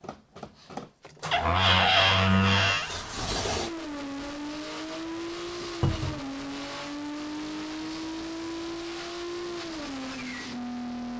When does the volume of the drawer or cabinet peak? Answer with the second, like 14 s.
2 s.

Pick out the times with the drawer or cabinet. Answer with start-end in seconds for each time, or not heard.
1.3-2.9, 5.8-6.2.